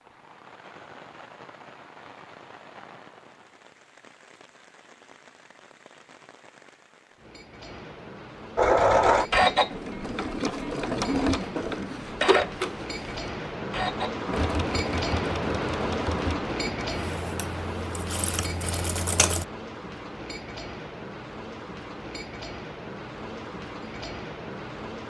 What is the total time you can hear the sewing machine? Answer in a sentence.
The sewing machine can be heard for 11 seconds in total.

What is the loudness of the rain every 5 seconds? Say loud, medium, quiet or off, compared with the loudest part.
quiet, quiet, loud, loud, medium.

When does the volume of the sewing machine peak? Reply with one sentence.
The volume of the sewing machine peaks at 9 seconds.